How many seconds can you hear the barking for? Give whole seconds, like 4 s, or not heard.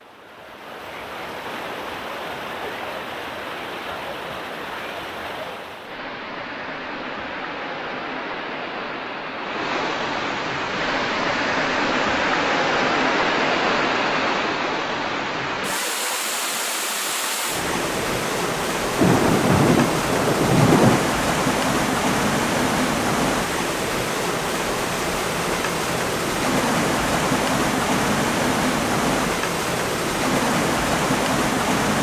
not heard.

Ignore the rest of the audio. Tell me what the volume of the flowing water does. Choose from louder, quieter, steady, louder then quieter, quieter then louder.
louder.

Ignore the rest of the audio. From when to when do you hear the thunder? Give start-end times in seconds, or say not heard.
18.9-21.0.